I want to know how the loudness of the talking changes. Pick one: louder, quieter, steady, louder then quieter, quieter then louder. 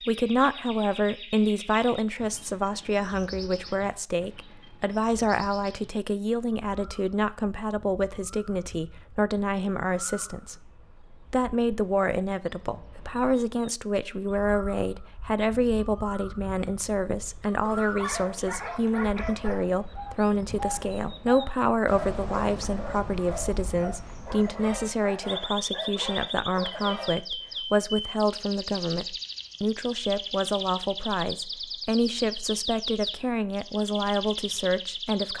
steady.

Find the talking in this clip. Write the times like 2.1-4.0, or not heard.
0.0-35.3.